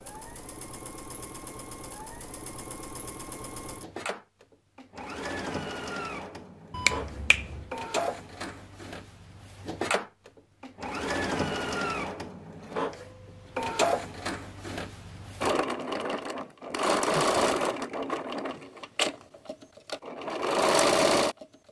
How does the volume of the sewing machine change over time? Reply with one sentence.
The volume of the sewing machine goes up.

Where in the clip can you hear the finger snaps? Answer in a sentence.
You can hear the finger snaps from 6.7 to 7.7 s.